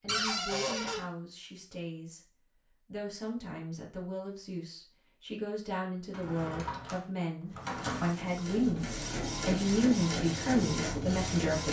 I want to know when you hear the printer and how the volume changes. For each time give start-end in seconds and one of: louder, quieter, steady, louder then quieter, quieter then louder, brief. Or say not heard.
7.5-11.6 louder.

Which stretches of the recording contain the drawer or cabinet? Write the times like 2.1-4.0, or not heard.
0.1-1.1, 6.1-8.1.